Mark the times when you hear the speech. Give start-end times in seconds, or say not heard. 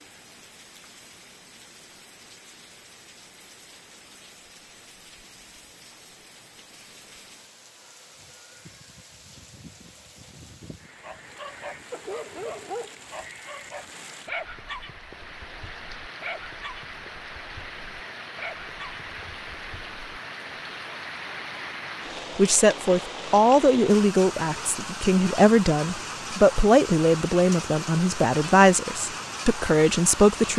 22.4-30.5.